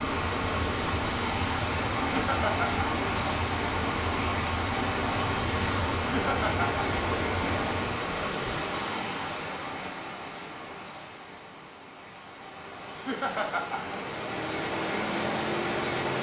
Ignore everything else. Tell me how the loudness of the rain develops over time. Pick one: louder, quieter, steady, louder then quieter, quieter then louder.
quieter then louder.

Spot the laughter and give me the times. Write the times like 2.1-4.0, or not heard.
2.1-2.9, 6.0-6.8, 12.9-13.9.